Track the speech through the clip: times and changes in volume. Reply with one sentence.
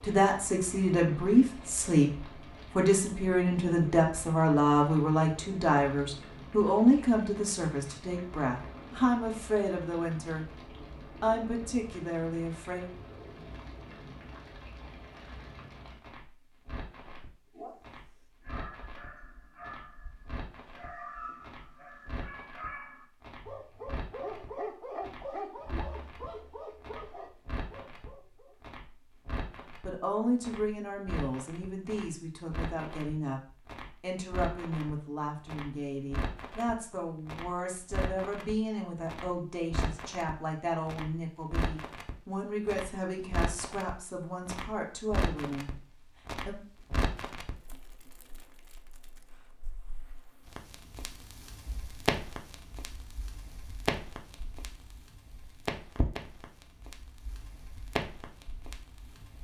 You can hear the speech from 0.0 to 12.9 s, getting quieter; and from 29.8 to 46.6 s, at a steady volume.